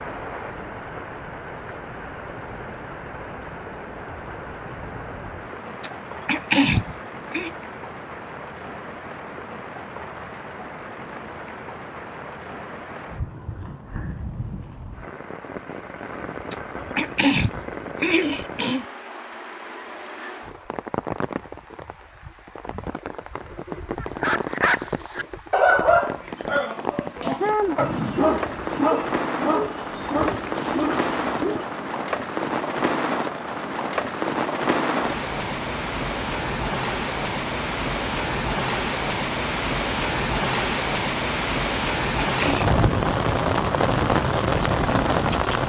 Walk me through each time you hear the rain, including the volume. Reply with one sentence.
The rain can be heard from 0.0 to 45.6 s, getting louder.